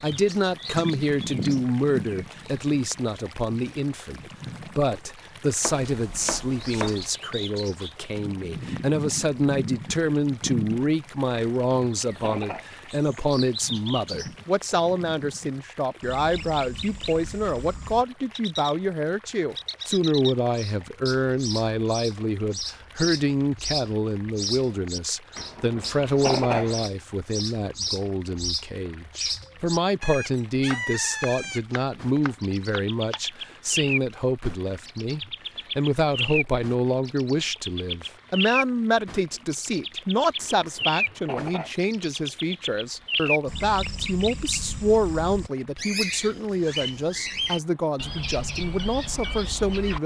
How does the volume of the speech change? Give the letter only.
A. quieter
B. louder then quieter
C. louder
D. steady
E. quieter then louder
D.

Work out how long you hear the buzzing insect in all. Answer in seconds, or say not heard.
not heard.